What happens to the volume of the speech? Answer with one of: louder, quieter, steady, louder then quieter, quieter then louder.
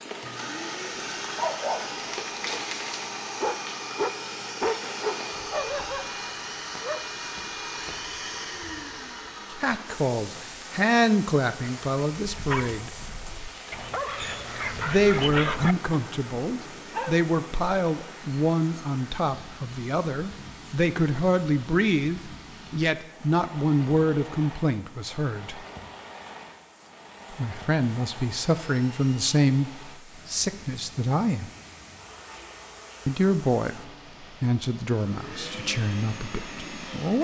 steady.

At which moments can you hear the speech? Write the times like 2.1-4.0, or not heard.
9.5-13.0, 14.8-25.6, 27.3-31.5, 33.0-37.2.